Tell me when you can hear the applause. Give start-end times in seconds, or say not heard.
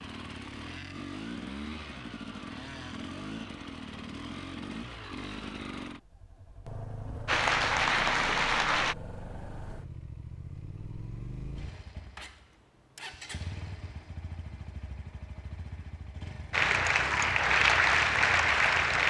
7.2-8.9, 16.5-19.0.